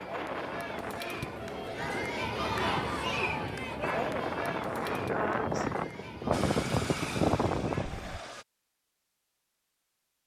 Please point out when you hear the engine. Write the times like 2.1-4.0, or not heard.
6.3-8.4.